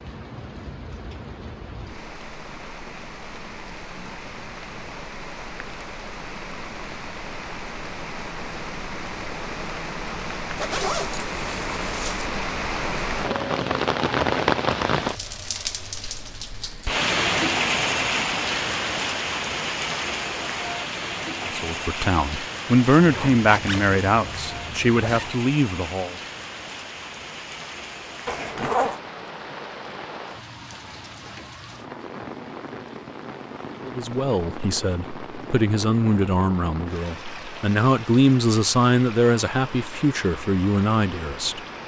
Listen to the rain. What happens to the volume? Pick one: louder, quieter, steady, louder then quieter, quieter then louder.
louder then quieter.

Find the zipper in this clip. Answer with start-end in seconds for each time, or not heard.
10.6-12.3, 22.9-25.4, 28.2-29.0.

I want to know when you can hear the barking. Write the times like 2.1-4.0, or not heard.
not heard.